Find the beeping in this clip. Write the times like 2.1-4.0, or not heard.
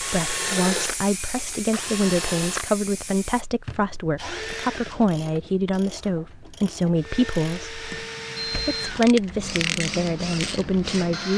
7.9-9.0.